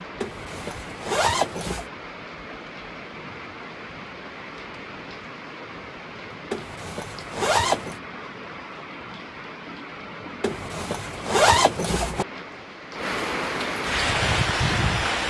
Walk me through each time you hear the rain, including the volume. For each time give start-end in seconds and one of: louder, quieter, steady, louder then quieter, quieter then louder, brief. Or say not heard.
0.0-15.2 louder.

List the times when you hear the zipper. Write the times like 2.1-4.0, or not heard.
0.2-1.9, 6.5-8.0, 10.4-12.2.